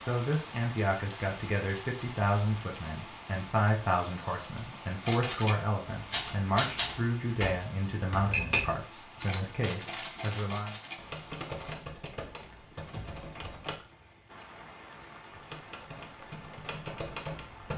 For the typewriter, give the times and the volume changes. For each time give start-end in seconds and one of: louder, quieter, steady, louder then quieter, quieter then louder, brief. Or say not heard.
5.0-13.8 quieter
15.3-17.7 brief.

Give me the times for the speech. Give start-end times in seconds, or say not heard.
0.0-10.8.